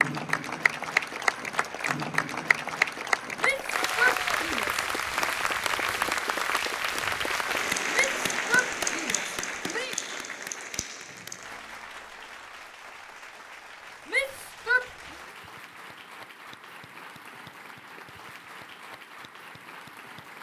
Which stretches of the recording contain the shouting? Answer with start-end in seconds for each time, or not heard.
3.4-4.8, 7.9-9.9, 14.1-14.9.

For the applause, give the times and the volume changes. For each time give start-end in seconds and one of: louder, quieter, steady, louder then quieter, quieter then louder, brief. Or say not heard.
0.0-20.3 quieter.